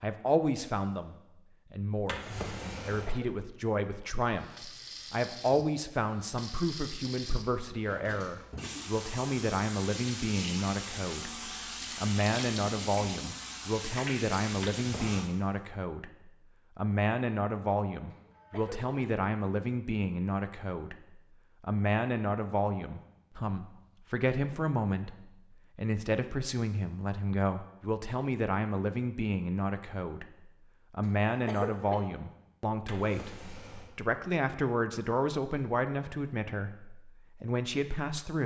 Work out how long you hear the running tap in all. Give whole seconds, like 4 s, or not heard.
11 s.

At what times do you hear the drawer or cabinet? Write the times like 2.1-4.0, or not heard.
1.9-3.1, 14.5-15.2, 32.8-34.0.